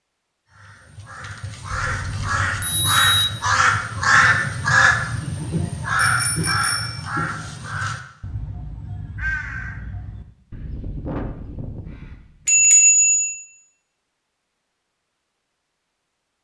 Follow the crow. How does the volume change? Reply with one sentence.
The volume of the crow goes up, then down.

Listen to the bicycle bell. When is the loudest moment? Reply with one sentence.
The loudest moment of the bicycle bell is at 13 seconds.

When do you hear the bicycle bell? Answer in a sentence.
You can hear the bicycle bell from 1.7 to 3.3 s, from 6.0 to 7.0 s and from 12.4 to 13.3 s.